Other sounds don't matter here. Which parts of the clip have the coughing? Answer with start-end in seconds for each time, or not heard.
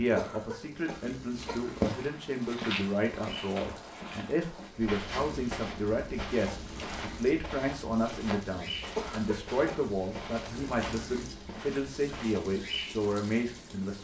0.1-1.9, 8.9-9.9.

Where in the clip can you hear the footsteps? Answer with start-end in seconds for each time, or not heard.
1.6-12.9.